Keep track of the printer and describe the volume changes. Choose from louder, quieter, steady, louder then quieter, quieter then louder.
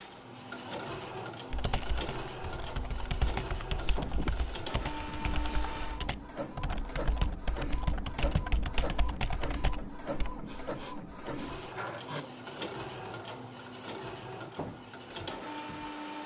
steady.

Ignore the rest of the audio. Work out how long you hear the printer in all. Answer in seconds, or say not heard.
16 s.